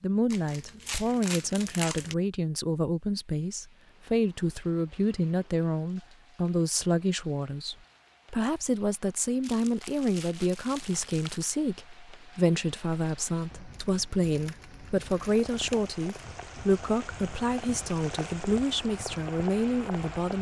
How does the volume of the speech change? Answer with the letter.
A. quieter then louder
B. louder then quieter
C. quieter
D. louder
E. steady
E.